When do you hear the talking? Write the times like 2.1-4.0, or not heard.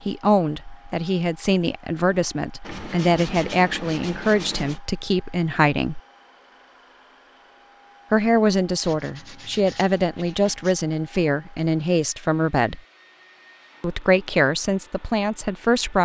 0.1-6.0, 8.1-12.8, 13.8-16.0.